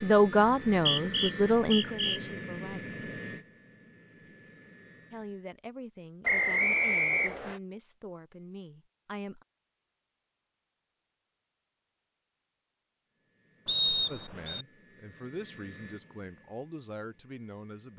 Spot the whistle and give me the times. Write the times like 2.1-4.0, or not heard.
0.7-2.2, 6.2-7.6, 13.7-14.7.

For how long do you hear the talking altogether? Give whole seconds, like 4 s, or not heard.
11 s.